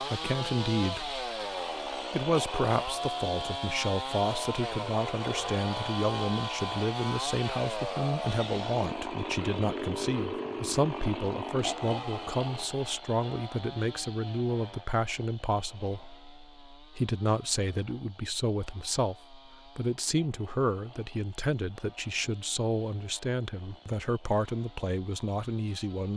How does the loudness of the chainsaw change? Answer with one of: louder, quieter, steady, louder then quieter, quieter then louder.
quieter.